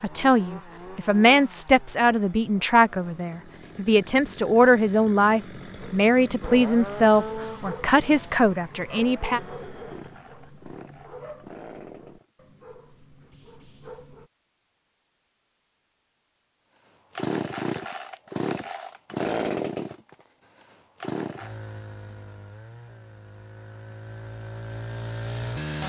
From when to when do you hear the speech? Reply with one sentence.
The speech can be heard from 0.0 to 9.4 s.